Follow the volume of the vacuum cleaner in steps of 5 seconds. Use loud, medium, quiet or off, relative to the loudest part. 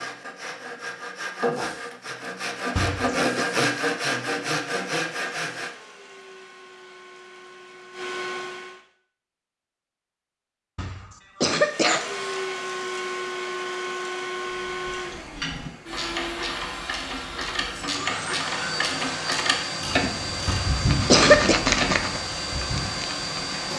off, medium, loud, loud, loud.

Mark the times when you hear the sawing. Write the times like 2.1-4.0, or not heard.
0.0-5.8, 20.8-23.7.